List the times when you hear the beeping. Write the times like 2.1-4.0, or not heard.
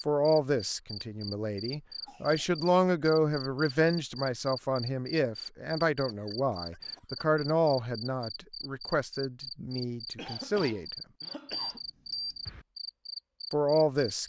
11.5-12.7.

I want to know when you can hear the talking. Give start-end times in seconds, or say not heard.
0.1-10.8, 13.5-14.2.